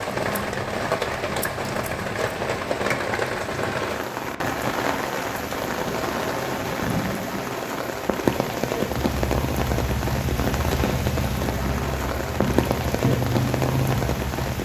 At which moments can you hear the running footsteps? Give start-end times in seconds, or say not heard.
not heard.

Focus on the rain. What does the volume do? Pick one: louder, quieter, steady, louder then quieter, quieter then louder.
steady.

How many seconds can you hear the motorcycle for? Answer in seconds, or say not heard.
6 s.